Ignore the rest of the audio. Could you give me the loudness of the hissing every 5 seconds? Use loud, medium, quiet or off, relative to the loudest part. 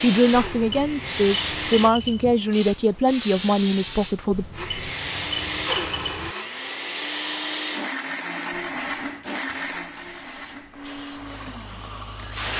loud, medium, medium.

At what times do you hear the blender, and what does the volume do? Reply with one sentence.
The blender can be heard briefly from 0.0 to 1.9 s; and from 4.5 to 12.5 s, getting quieter.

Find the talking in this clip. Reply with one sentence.
The talking can be heard from 0.0 to 4.5 s.